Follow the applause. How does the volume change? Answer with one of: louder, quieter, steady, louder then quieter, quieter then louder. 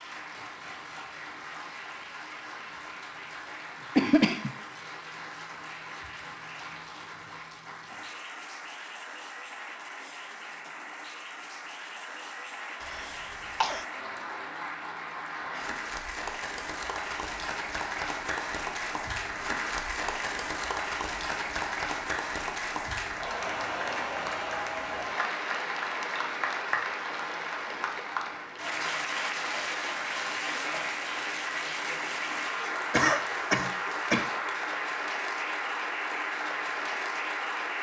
louder.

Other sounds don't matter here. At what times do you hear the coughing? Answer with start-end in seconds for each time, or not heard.
4.0-4.5, 12.8-13.8, 32.9-34.3.